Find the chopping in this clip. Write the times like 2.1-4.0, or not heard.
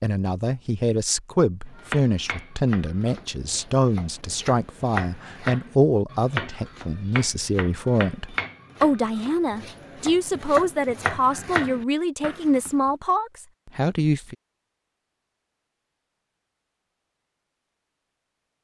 1.6-12.7.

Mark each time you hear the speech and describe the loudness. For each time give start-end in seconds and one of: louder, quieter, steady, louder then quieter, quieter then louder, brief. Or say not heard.
0.0-14.3 steady.